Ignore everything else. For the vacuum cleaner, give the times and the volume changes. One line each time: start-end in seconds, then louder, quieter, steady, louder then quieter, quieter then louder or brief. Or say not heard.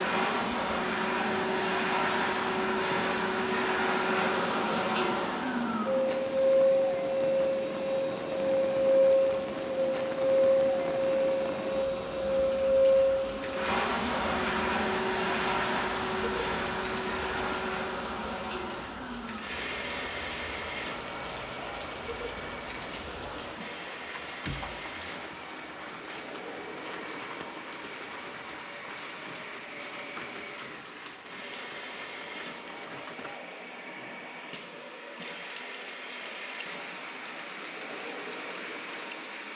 0.0-39.5 quieter.